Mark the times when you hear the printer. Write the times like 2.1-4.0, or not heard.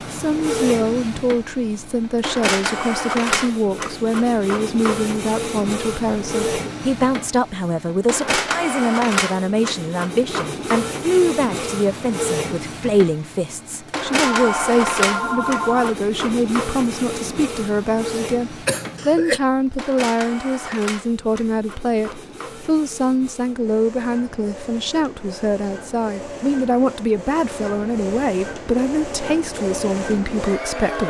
0.0-31.0.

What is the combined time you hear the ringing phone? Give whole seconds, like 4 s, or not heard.
2 s.